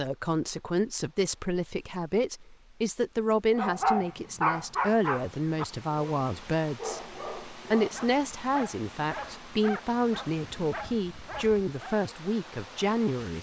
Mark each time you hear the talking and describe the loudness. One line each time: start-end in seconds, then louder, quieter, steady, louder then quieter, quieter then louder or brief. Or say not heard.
0.0-13.3 steady.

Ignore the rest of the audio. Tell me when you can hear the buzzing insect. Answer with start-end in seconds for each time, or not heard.
not heard.